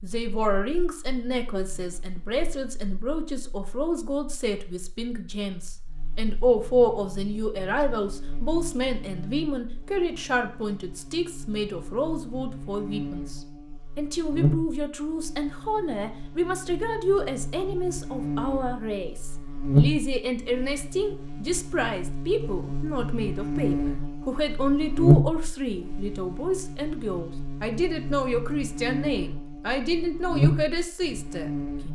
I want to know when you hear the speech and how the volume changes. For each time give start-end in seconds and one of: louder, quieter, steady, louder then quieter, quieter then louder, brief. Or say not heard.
0.0-31.8 steady.